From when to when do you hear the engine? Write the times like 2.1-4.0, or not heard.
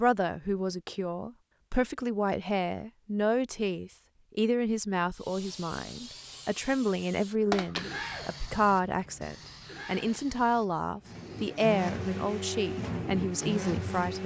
11.1-14.2.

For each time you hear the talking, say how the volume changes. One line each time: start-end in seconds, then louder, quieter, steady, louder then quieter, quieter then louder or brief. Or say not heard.
0.0-14.2 steady.